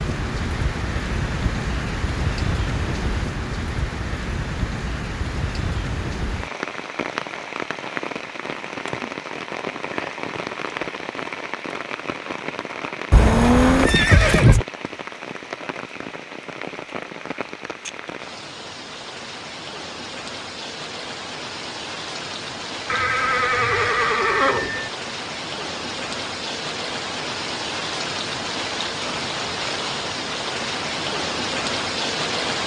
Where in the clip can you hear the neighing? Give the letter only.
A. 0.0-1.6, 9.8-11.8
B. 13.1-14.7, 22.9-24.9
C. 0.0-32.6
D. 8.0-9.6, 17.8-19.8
B.